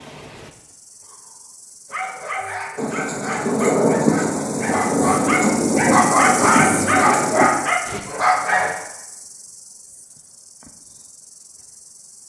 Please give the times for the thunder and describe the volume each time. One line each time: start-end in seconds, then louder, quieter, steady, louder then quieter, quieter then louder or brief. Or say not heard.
2.8-7.5 steady.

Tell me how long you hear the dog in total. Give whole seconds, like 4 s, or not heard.
7 s.